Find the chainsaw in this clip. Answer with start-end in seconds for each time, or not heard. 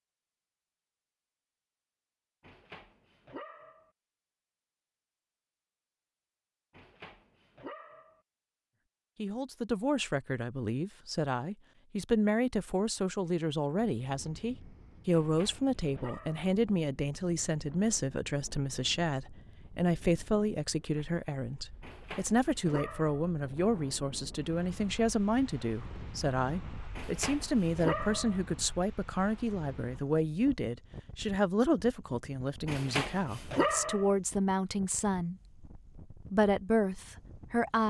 not heard.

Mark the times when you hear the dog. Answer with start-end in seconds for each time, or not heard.
2.4-3.9, 6.7-8.2, 15.1-16.6, 21.8-23.3, 26.9-28.4, 32.6-34.1.